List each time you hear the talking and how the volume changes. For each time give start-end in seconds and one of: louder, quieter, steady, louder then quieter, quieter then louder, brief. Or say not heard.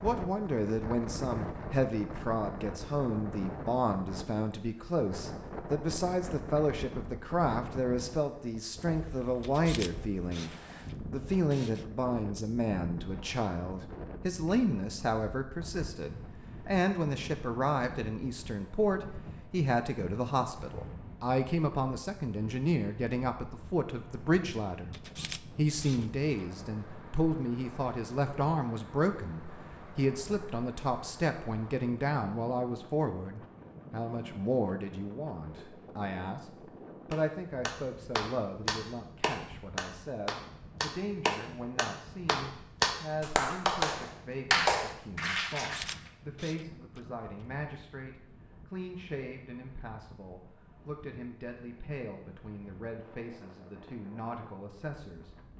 0.0-55.4 quieter.